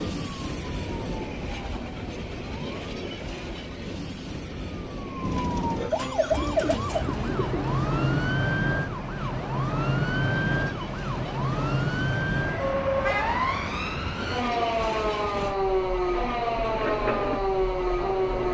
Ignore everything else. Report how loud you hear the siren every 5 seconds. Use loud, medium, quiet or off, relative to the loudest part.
quiet, loud, loud, loud.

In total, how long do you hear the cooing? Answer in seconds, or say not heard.
2 s.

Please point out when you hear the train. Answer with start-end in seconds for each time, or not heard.
0.0-18.4.